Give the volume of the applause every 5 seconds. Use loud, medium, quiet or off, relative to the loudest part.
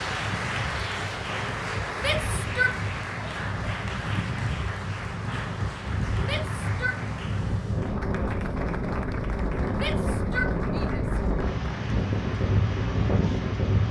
loud, medium, medium.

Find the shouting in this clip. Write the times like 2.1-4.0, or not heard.
1.9-2.8, 6.2-7.0, 9.8-11.2.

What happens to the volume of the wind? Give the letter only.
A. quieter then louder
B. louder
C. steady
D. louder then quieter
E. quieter
B.